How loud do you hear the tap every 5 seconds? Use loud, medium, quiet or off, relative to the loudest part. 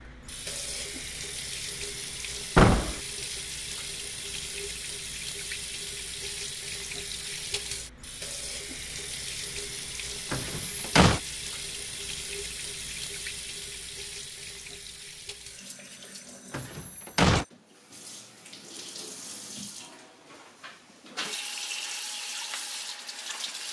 loud, loud, loud, medium, loud.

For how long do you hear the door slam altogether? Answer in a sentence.
The door slam can be heard for 2 seconds in total.